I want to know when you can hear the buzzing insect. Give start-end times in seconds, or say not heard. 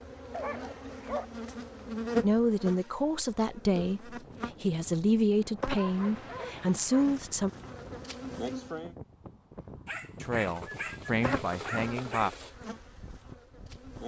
0.0-8.9, 11.2-14.0.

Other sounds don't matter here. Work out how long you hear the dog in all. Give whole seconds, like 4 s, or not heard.
5 s.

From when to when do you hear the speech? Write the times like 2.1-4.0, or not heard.
2.2-7.5, 10.2-12.3.